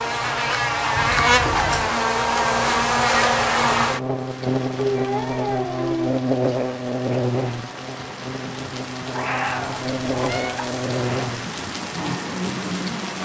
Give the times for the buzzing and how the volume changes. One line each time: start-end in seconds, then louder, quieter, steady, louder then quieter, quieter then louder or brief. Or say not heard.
0.0-13.1 quieter.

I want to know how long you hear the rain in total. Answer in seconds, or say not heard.
9 s.